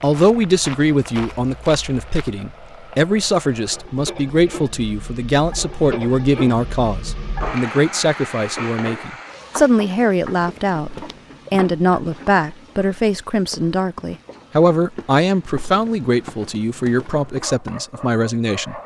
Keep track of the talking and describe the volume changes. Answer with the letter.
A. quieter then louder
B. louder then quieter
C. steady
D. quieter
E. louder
C.